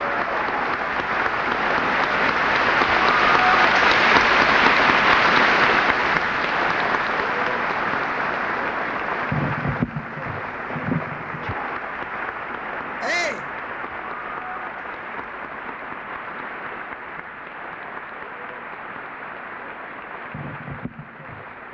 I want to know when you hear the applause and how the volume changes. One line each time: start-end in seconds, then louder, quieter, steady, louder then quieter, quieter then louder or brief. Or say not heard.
0.0-21.6 quieter.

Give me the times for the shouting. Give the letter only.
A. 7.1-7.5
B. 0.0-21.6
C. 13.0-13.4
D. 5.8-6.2
C.